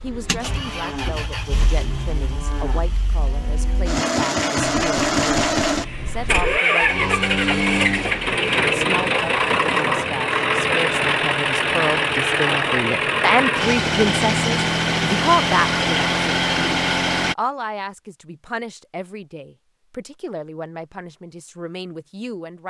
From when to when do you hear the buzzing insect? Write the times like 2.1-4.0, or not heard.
not heard.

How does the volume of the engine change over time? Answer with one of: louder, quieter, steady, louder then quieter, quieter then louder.
louder.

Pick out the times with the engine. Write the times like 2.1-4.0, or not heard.
0.0-17.4.